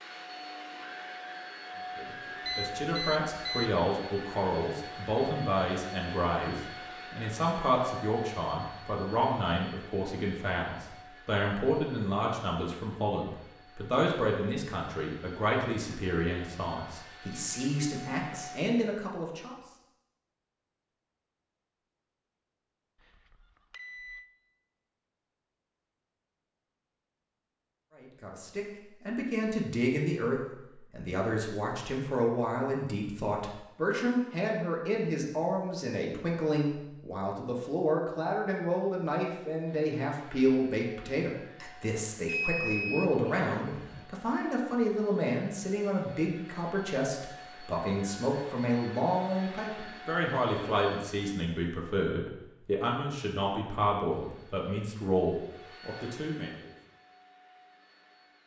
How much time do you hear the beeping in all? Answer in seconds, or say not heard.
4 s.